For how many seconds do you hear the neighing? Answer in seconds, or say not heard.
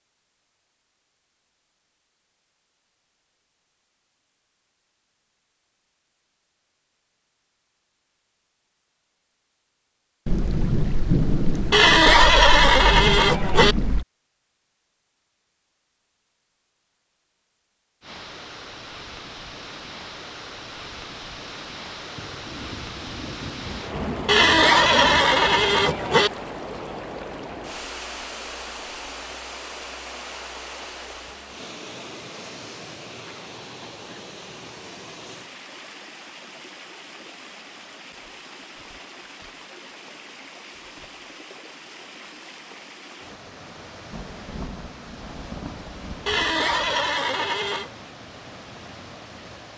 6 s.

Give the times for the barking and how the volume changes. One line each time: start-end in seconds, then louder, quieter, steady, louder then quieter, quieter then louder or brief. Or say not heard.
not heard.